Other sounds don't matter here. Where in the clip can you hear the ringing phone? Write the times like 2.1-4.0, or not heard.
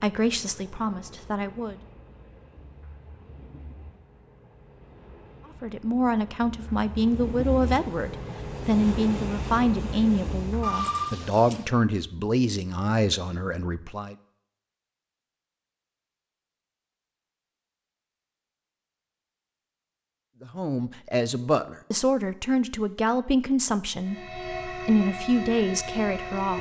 10.6-11.7.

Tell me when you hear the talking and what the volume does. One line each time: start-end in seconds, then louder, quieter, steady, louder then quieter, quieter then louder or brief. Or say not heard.
0.0-1.8 brief
5.6-14.2 steady
20.4-26.5 steady.